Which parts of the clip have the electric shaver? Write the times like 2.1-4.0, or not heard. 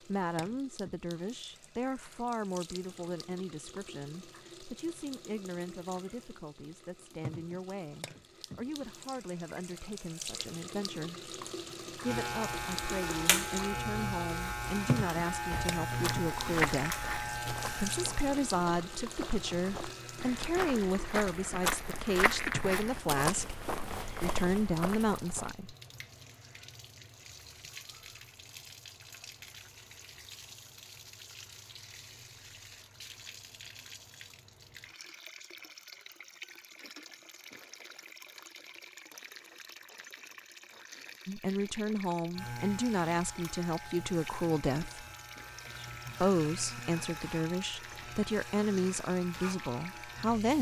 12.0-20.6, 42.3-50.5.